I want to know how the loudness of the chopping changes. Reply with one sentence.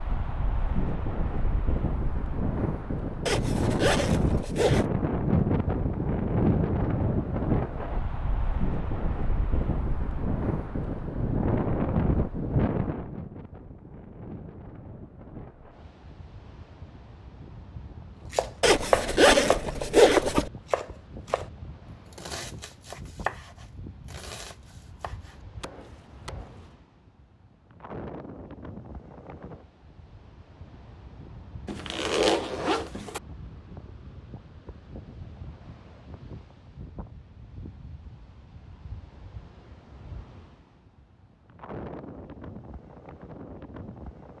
The volume of the chopping goes down.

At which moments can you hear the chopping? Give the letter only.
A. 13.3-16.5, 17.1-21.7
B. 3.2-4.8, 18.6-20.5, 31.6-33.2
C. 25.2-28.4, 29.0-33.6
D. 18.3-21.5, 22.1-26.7
D.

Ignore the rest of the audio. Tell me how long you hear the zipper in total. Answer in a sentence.
You can hear the zipper for 5 seconds altogether.